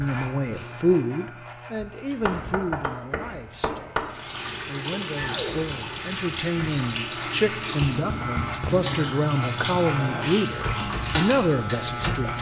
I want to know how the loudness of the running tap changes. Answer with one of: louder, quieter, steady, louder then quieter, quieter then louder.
steady.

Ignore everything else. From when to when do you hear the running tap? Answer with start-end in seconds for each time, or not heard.
4.1-12.3.